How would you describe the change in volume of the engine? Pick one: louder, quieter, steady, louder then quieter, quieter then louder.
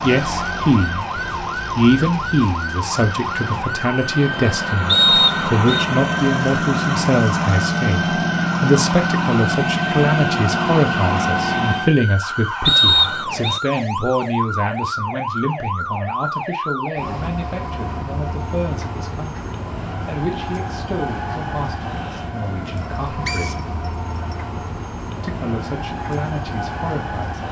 louder.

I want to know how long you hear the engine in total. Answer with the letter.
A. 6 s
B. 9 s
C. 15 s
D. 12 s
D.